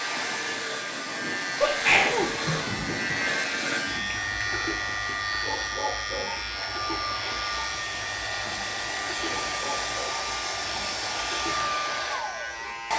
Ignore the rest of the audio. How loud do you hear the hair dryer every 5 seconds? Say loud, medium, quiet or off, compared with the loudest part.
medium, loud, loud.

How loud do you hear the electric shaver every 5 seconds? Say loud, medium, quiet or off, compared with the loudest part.
loud, loud, medium.